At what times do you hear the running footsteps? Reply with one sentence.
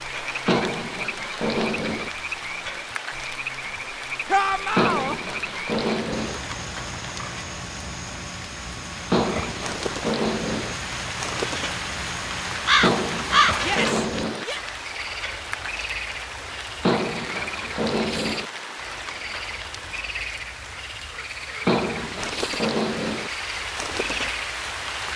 You can't hear the running footsteps here.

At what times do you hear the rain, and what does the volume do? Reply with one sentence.
The rain can be heard from 0.0 to 25.1 s, getting louder then quieter.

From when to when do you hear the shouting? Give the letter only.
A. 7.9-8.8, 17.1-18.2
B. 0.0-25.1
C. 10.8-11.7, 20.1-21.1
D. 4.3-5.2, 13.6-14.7
D.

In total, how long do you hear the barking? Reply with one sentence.
You can hear the barking for 10 seconds altogether.